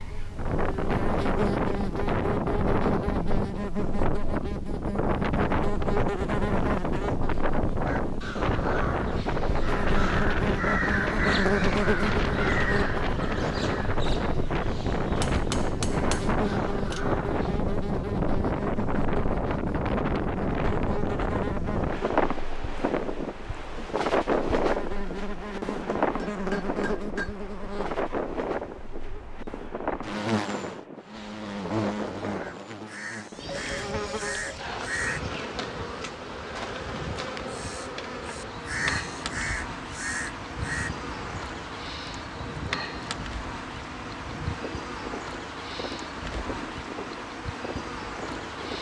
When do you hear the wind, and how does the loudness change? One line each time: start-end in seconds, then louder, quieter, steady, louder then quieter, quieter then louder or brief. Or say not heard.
0.0-48.7 quieter.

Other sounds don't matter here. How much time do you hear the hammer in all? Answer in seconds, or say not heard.
3 s.